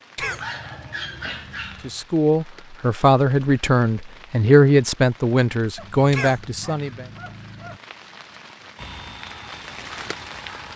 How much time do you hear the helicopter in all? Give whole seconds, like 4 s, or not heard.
2 s.